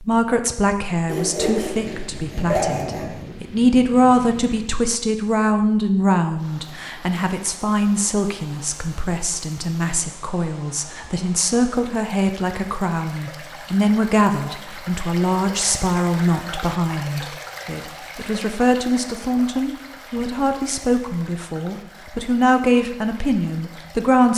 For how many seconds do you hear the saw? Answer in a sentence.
You can hear the saw for 2 seconds altogether.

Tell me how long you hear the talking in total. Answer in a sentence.
The talking can be heard for 24 seconds in total.